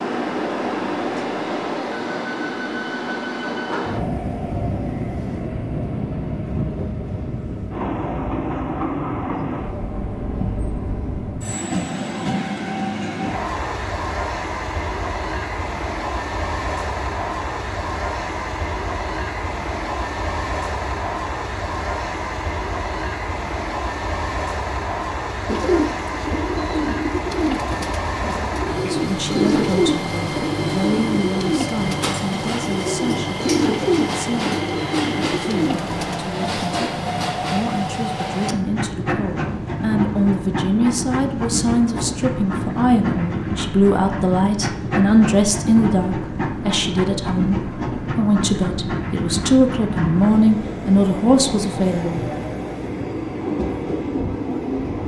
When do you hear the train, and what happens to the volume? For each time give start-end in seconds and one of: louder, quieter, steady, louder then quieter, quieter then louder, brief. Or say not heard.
0.0-55.0 steady.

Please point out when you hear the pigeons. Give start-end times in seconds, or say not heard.
25.4-36.9.